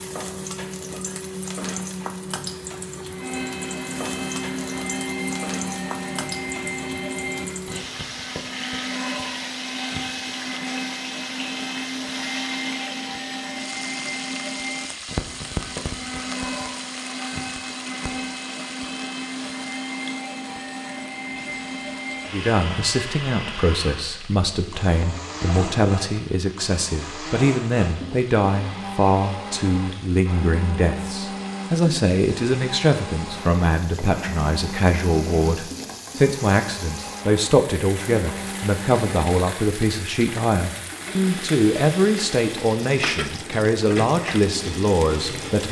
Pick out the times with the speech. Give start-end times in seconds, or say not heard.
22.3-45.6.